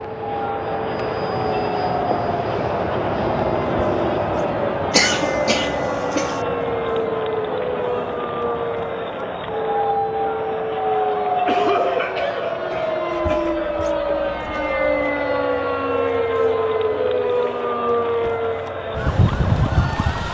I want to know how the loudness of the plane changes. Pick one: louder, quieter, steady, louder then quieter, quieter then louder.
quieter.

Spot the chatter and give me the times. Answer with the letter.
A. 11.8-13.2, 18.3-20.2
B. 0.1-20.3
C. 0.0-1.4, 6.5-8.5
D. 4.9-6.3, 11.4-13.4
B.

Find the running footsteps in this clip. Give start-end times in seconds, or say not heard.
not heard.